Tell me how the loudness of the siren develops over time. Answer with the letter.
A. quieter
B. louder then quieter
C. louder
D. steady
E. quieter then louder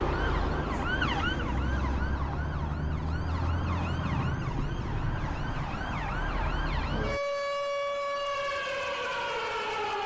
D.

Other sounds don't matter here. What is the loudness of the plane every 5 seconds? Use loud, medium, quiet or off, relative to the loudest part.
loud, off.